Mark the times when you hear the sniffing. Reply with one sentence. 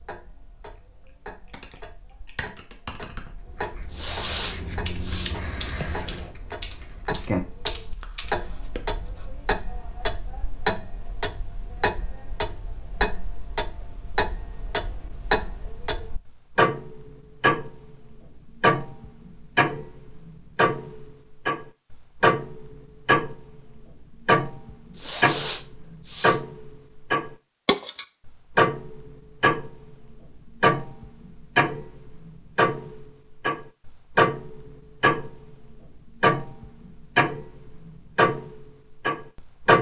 You can hear the sniffing from 3.9 to 5.3 s and from 24.9 to 26.4 s.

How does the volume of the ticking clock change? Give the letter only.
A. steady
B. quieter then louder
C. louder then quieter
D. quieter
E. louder
E.